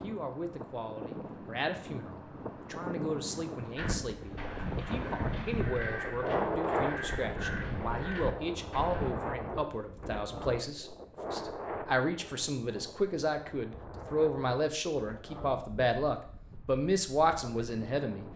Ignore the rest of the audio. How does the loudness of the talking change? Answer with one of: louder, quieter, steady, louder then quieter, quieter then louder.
louder.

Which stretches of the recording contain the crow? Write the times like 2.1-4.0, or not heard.
3.8-9.2.